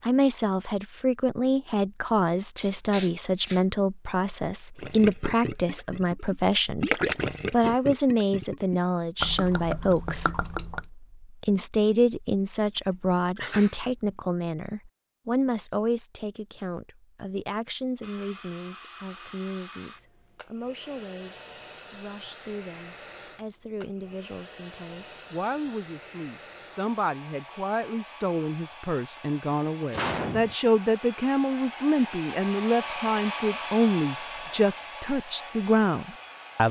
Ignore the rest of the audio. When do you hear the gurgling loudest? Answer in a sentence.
The volume of the gurgling peaks at 7 seconds.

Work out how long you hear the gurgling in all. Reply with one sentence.
The gurgling can be heard for 6 seconds in total.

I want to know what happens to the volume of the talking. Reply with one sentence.
The volume of the talking goes down, then up.